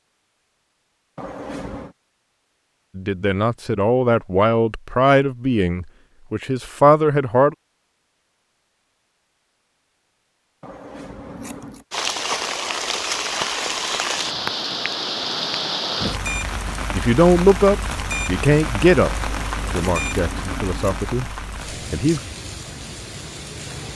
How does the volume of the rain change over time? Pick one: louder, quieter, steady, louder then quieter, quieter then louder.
quieter.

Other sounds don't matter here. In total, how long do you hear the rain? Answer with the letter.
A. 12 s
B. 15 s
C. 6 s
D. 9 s
A.